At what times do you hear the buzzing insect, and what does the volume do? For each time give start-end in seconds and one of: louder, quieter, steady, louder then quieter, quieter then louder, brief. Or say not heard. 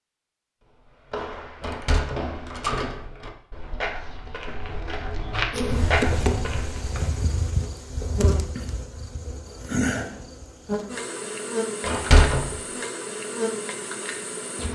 5.5-14.6 steady.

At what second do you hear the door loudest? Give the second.
12 s.